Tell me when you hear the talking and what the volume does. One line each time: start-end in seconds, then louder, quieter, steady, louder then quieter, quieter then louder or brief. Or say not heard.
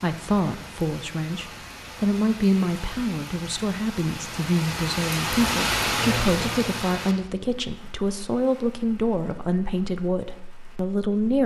0.0-11.4 steady.